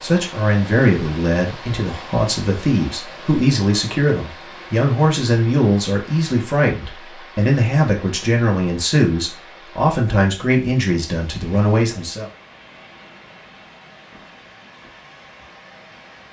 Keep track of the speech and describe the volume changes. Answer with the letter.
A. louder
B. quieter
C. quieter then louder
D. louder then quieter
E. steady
E.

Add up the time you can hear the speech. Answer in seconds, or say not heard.
12 s.